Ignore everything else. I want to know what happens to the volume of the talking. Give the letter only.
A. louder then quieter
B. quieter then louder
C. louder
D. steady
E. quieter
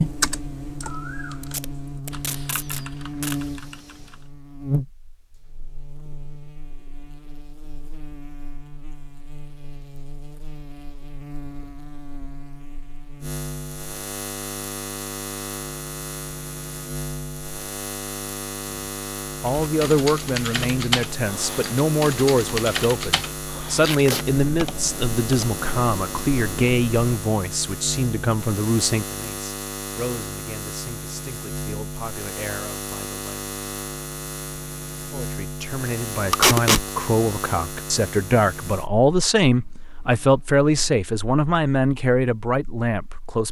B.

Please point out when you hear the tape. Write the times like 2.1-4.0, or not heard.
1.4-3.4, 23.8-24.2, 36.3-36.9.